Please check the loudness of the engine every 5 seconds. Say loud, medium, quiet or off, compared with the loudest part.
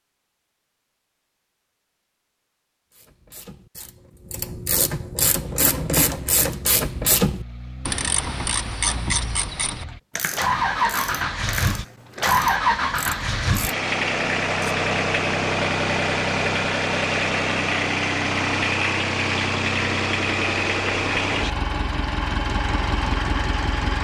off, quiet, loud, loud, loud.